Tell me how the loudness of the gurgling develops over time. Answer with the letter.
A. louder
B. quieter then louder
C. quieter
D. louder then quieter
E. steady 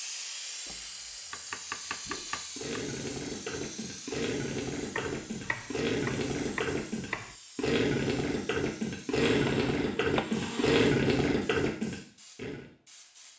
A.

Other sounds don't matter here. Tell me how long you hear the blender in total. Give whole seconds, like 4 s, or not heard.
2 s.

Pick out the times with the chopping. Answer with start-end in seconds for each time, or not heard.
0.7-2.8, 5.0-7.3, 9.4-10.2.